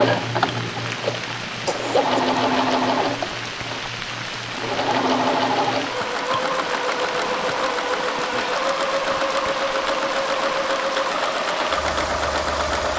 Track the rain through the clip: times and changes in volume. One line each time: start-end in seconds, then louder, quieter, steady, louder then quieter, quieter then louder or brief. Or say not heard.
0.0-12.9 steady.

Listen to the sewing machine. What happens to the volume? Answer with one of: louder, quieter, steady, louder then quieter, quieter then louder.
steady.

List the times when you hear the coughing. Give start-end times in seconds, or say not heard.
0.8-2.2.